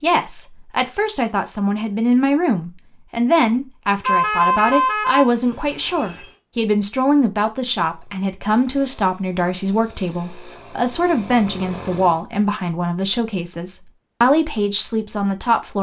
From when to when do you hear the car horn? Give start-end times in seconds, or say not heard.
4.0-6.3.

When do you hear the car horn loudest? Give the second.
4 s.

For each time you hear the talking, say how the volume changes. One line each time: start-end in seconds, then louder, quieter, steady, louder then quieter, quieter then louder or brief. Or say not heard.
0.0-15.7 steady.